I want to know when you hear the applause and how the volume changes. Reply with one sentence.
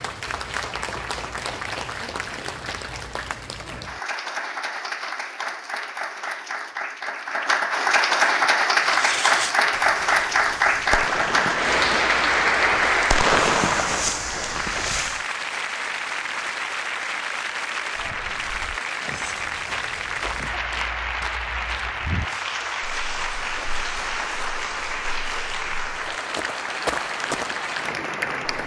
You can hear the applause from 0.0 to 28.6 s, getting louder then quieter.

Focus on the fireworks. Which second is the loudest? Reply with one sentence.
The loudest moment of the fireworks is at 13 seconds.